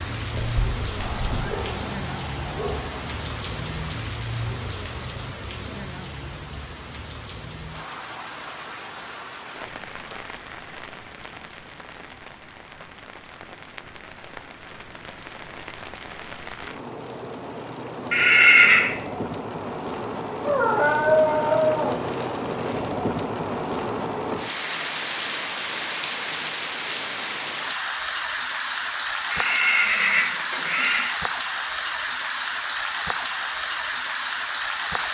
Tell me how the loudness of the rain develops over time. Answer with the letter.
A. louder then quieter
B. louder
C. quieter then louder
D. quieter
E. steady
C.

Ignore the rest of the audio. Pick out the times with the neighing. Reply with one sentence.
You can hear the neighing from 0.3 to 1.7 s, from 18.1 to 18.9 s and from 29.3 to 31.1 s.